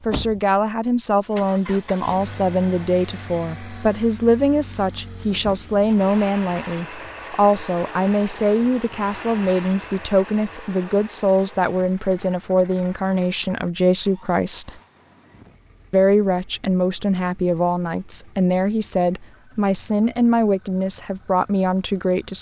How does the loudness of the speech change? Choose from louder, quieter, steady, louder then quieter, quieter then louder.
steady.